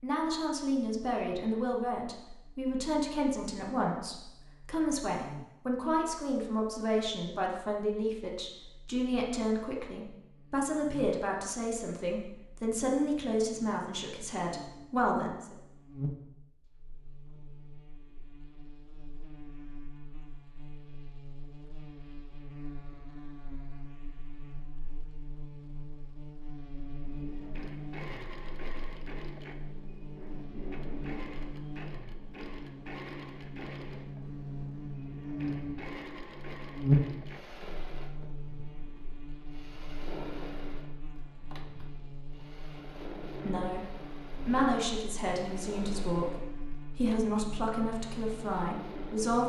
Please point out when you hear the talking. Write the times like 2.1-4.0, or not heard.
0.0-15.6, 43.4-49.4.